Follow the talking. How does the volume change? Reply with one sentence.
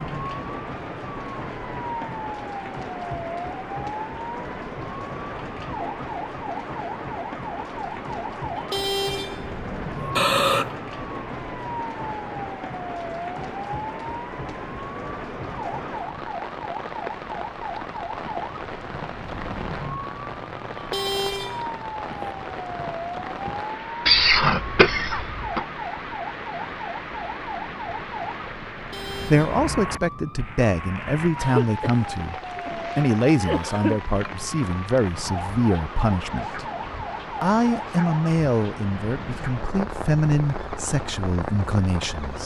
The loudness of the talking stays about the same.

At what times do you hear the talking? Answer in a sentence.
You can hear the talking from 29.3 to 36.7 s and from 37.4 to 42.4 s.